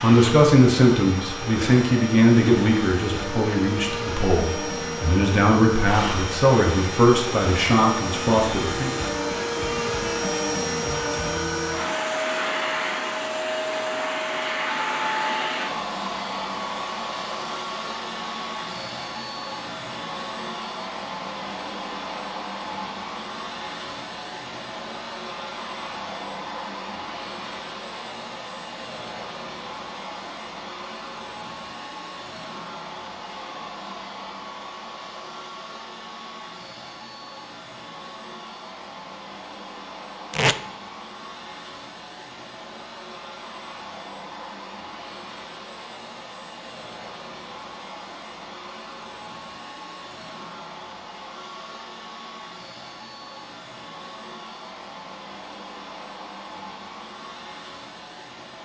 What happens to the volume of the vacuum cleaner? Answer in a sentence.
The loudness of the vacuum cleaner goes down.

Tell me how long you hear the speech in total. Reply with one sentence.
The speech can be heard for 9 seconds in total.